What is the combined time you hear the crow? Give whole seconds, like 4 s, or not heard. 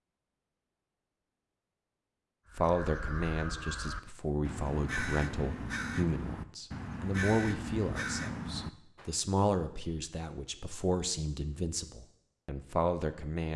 7 s.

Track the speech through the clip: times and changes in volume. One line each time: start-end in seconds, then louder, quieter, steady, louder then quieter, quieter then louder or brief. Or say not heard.
2.5-13.5 steady.